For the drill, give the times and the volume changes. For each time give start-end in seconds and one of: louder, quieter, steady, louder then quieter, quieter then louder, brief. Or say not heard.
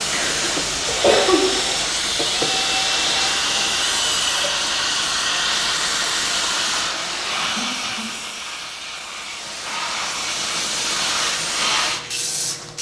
0.0-4.5 steady.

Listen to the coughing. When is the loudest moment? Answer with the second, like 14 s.
1 s.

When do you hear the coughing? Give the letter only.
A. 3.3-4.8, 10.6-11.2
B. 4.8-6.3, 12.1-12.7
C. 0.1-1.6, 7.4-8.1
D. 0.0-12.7
C.